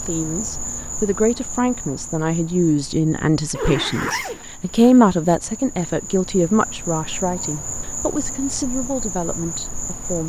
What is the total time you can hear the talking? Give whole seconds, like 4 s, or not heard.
10 s.